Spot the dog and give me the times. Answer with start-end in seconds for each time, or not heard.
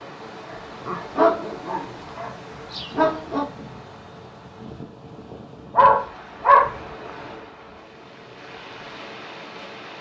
0.5-3.5, 5.8-6.7.